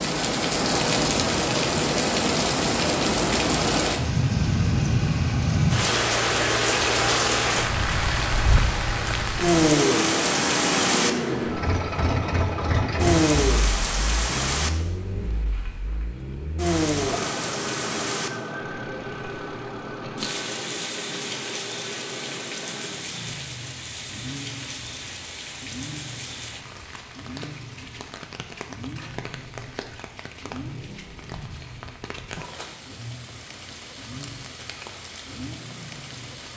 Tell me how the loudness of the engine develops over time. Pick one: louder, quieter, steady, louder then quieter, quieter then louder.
quieter.